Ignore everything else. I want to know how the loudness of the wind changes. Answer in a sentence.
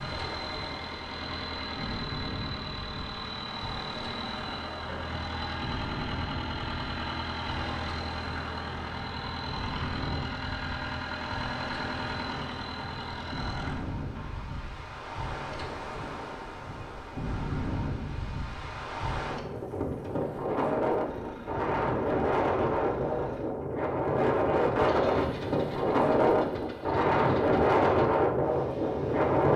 The volume of the wind goes up.